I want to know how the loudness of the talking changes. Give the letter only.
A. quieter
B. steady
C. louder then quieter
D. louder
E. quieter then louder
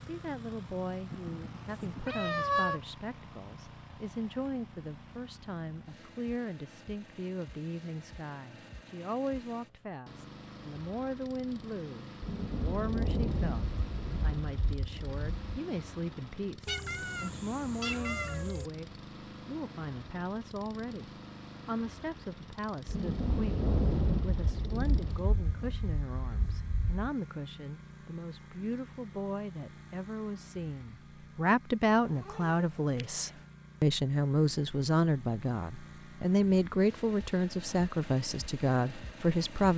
D.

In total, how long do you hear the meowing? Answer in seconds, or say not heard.
5 s.